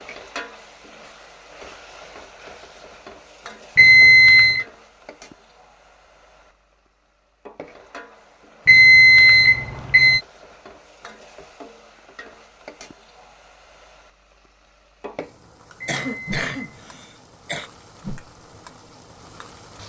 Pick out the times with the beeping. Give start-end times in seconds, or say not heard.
3.8-4.7, 8.7-10.2, 15.8-16.8.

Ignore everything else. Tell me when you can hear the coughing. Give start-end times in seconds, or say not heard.
15.8-17.7.